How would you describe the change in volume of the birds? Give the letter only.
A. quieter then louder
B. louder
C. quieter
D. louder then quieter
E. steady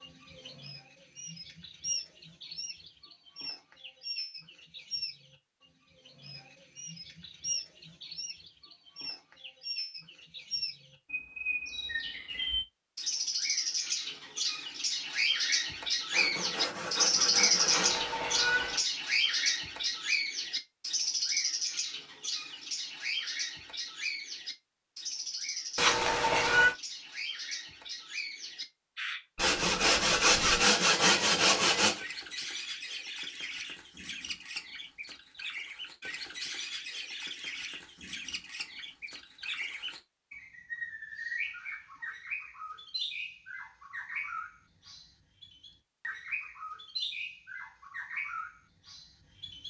D.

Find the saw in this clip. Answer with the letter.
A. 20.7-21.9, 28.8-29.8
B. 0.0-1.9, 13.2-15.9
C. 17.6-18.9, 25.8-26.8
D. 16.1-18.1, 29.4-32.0
D.